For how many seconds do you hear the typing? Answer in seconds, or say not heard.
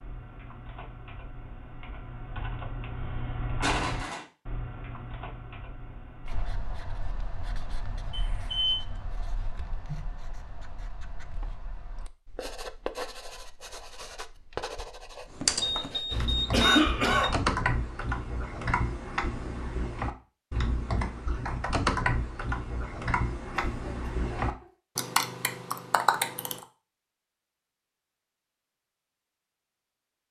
18 s.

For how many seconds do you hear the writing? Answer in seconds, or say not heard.
10 s.